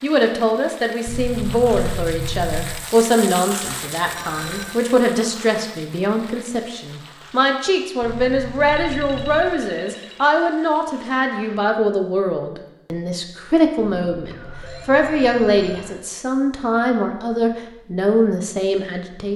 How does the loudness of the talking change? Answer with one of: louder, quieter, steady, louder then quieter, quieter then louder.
steady.